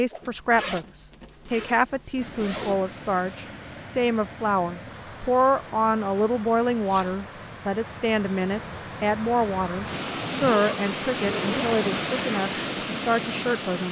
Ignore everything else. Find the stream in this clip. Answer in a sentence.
The stream can be heard from 2.1 to 13.8 s.